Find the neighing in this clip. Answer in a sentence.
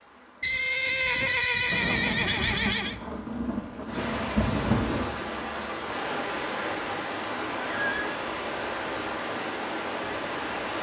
The neighing can be heard from 0.4 to 3.0 s and from 7.5 to 8.2 s.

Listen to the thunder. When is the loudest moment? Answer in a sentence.
The volume of the thunder peaks at 5 seconds.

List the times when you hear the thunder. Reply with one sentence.
The thunder can be heard from 1.6 to 5.1 s.